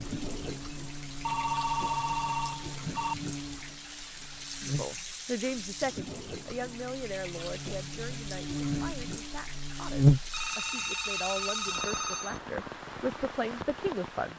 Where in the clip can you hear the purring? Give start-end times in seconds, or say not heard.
not heard.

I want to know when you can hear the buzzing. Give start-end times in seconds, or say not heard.
0.0-10.3.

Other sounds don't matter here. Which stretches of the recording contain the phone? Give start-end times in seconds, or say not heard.
1.2-3.1, 10.3-12.4.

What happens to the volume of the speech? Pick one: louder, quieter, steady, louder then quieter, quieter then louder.
quieter then louder.